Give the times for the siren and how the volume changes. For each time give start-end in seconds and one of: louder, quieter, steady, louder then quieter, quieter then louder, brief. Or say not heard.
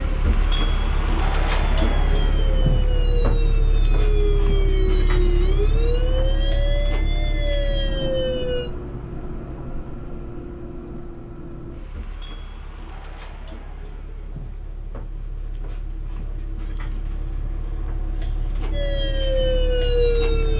0.3-8.7 louder
18.7-20.5 brief.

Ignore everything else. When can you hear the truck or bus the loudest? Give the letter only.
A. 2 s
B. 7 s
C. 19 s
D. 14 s
A.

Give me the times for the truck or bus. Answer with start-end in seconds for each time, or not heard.
0.0-20.5.